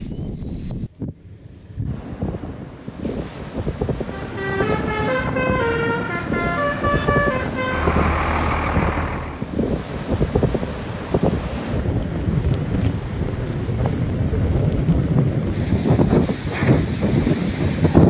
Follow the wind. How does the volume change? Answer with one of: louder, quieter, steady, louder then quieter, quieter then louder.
louder.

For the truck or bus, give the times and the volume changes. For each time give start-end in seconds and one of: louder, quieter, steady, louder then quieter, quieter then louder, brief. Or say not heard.
4.0-9.5 steady.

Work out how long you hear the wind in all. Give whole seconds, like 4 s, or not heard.
18 s.